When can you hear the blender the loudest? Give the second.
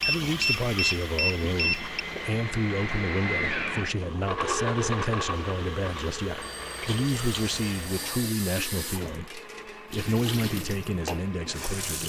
5 s.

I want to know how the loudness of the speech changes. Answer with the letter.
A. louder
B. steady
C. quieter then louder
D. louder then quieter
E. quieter
B.